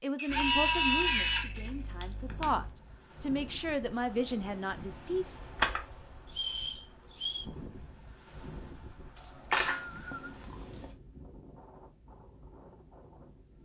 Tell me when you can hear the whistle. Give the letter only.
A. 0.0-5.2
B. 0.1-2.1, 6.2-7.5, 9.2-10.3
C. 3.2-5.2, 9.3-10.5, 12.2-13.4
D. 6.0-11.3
B.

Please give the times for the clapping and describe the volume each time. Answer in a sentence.
You can't hear the clapping here.